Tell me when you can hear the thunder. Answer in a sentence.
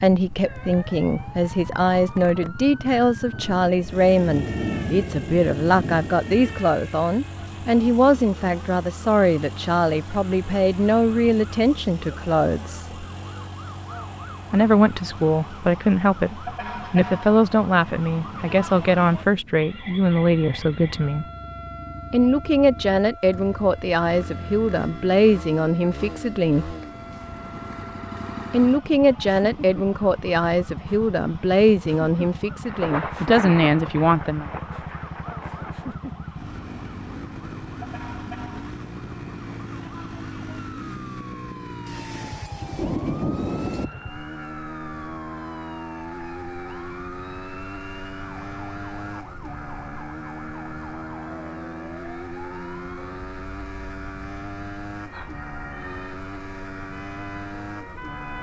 You can hear the thunder from 3.3 to 6.6 s, from 32.6 to 36.0 s and from 41.9 to 43.9 s.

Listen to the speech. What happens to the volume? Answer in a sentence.
The loudness of the speech stays about the same.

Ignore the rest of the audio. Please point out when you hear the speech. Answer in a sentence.
The speech can be heard from 0.0 to 13.1 s, from 14.5 to 21.2 s, from 22.1 to 26.8 s and from 28.5 to 34.5 s.